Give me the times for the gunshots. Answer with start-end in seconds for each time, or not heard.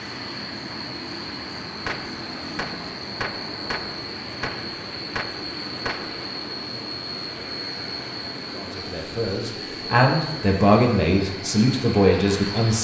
1.9-6.2.